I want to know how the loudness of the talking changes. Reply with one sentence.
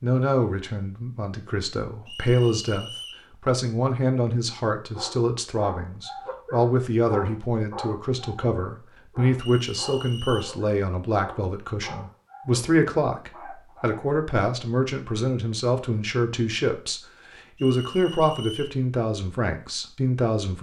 The volume of the talking stays about the same.